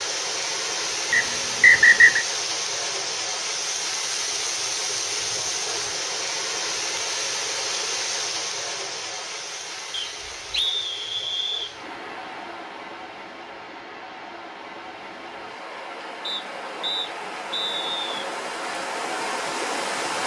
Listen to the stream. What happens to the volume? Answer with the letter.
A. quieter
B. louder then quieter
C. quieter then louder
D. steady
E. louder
C.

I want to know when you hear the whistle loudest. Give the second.
2 s.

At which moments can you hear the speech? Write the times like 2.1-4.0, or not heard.
not heard.